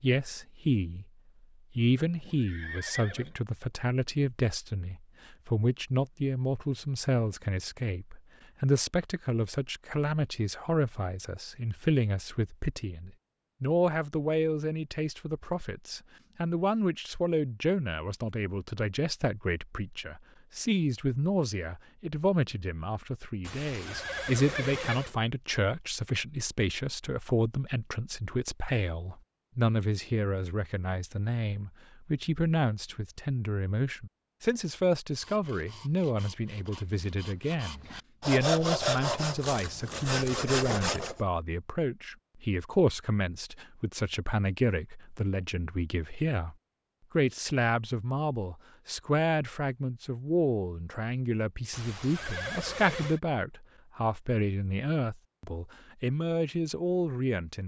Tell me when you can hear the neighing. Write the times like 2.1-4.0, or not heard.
2.2-3.4, 23.4-25.1, 51.7-53.2.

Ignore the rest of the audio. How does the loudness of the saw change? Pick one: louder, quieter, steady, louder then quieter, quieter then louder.
louder.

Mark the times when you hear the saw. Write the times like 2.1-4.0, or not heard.
35.1-41.2.